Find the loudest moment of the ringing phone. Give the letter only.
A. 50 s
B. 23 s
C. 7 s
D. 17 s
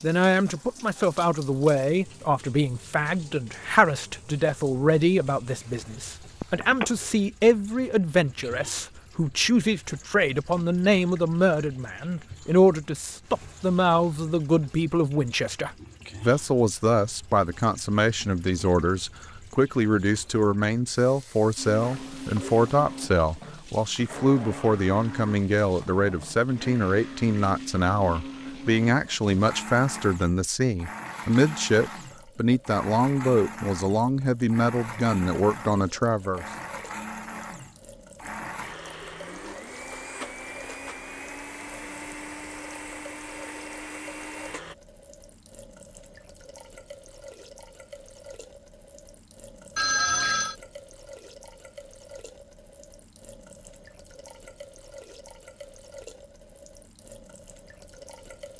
A.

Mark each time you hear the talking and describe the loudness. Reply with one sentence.
You can hear the talking from 0.0 to 36.5 s, at a steady volume.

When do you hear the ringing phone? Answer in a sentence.
You can hear the ringing phone from 6.4 to 6.8 s, from 21.8 to 22.7 s and from 49.8 to 50.5 s.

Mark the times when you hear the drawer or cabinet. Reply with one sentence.
You can't hear the drawer or cabinet here.